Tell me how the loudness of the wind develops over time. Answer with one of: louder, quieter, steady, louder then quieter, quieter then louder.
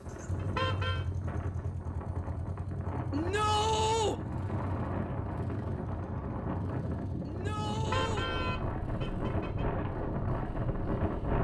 louder.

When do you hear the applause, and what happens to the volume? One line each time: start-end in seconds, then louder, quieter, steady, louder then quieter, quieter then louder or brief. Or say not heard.
not heard.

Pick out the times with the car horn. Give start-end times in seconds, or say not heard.
0.3-1.1, 7.8-9.7.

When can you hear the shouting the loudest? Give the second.
4 s.